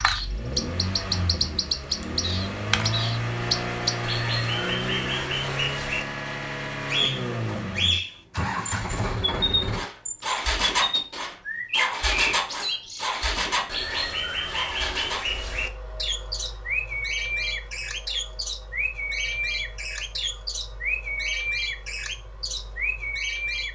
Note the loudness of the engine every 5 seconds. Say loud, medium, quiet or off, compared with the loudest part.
loud, loud, loud, quiet, quiet.